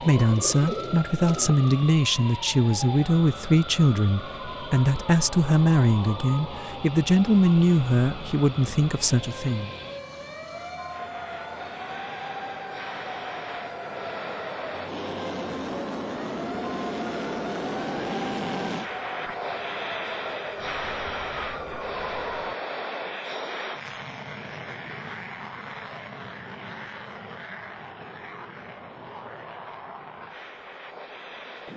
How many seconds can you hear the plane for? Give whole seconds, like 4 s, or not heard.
32 s.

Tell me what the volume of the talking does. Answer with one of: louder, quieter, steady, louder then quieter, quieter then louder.
steady.